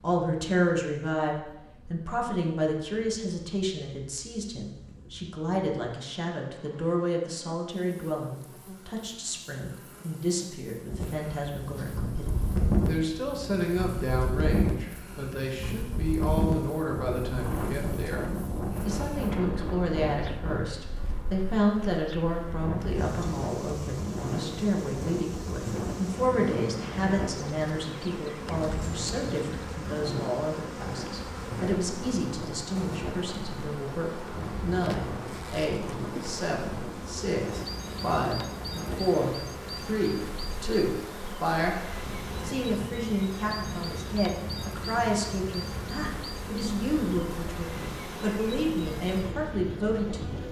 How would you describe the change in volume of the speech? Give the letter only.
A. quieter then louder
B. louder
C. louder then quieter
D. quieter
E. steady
E.